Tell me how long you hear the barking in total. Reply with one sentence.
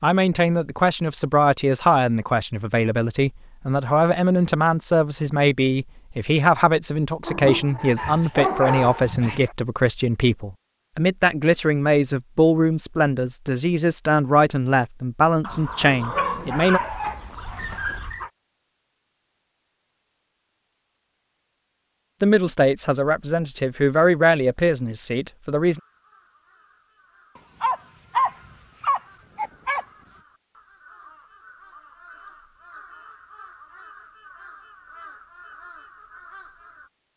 You can hear the barking for 8 seconds altogether.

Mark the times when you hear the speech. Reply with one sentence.
The speech can be heard from 0.0 to 16.8 s and from 22.2 to 25.8 s.